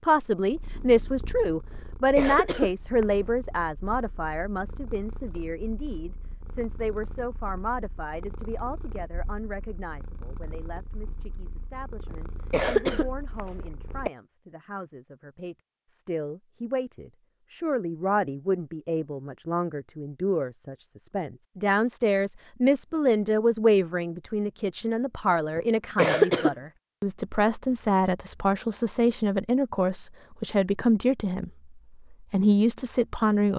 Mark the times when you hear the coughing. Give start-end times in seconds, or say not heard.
1.7-3.1, 12.1-14.1, 25.6-26.6.